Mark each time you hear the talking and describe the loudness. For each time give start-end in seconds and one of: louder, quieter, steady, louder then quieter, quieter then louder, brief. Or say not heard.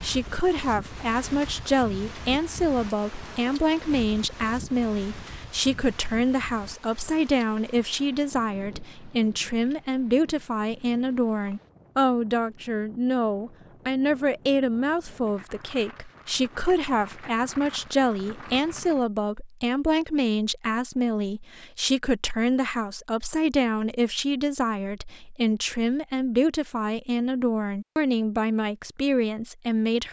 0.0-30.0 steady.